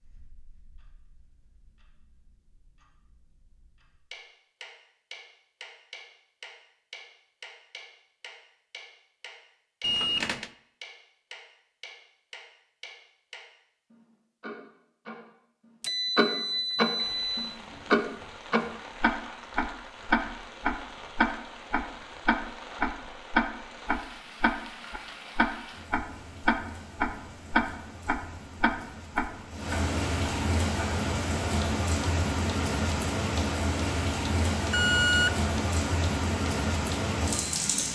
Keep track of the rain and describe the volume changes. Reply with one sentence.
The volume of the rain goes up.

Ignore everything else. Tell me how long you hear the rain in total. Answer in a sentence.
You can hear the rain for 21 seconds altogether.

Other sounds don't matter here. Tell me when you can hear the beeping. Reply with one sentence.
The beeping can be heard from 9.8 to 10.5 s, from 15.8 to 17.6 s and from 34.7 to 35.4 s.